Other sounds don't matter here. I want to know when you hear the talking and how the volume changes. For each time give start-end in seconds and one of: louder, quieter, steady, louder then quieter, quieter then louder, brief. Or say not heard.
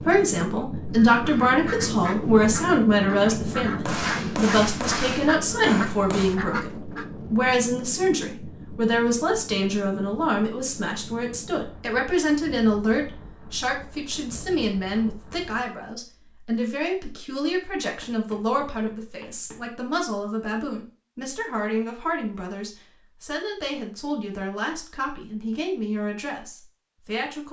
0.1-27.4 quieter.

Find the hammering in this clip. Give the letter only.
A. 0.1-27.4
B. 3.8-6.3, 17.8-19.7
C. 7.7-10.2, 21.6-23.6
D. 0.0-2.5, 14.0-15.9
B.